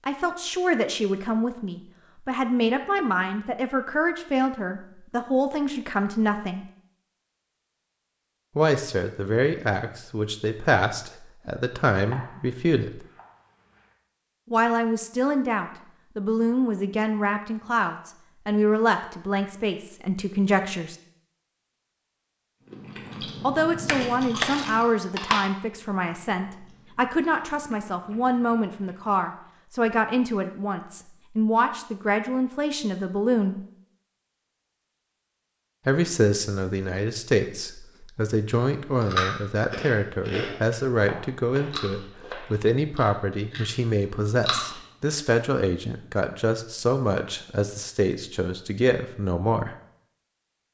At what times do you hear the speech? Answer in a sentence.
The speech can be heard from 0.1 to 6.7 s, from 8.6 to 13.1 s, from 14.5 to 20.9 s, from 23.4 to 33.6 s and from 35.9 to 49.8 s.